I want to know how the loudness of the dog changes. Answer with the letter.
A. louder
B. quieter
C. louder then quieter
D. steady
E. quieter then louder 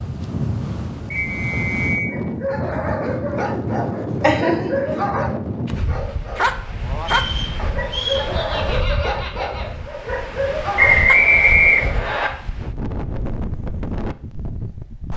D.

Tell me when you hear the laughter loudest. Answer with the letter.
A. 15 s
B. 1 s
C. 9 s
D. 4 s
D.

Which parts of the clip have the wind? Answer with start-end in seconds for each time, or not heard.
0.0-15.1.